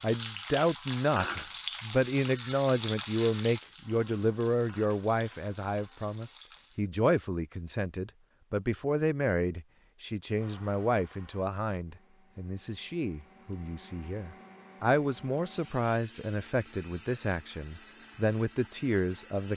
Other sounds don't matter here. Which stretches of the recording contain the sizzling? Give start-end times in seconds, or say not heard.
0.0-6.8.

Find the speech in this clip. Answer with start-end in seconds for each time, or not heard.
0.0-19.5.